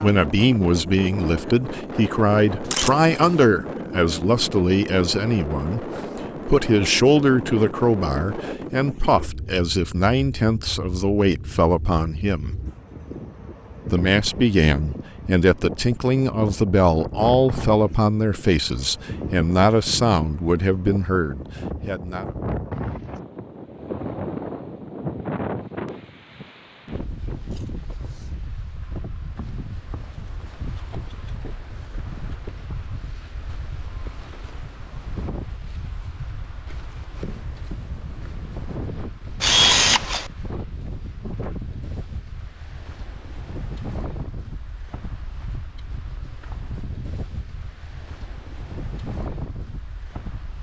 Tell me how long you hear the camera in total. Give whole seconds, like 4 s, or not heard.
2 s.